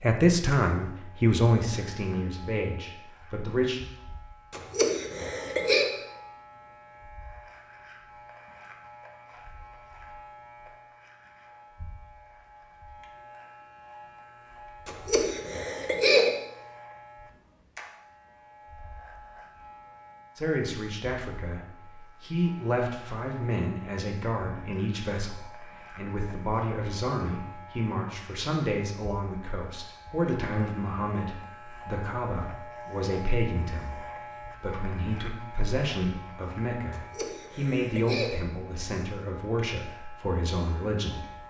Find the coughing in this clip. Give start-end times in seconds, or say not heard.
4.5-5.9, 14.8-16.3, 36.9-38.4.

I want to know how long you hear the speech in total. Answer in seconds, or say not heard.
25 s.